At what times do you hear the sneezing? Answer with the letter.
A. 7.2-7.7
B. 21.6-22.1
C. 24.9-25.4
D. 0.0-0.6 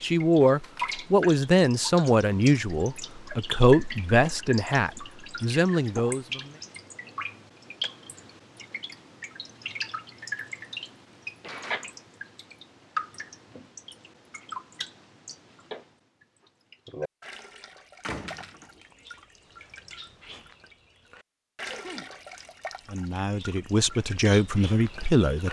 B.